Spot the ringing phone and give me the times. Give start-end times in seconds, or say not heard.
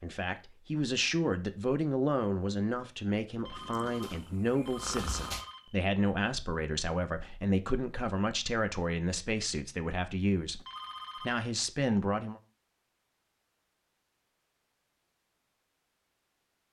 3.4-5.8, 10.6-11.4.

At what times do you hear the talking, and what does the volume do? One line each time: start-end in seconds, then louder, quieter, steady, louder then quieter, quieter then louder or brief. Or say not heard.
0.0-12.4 steady.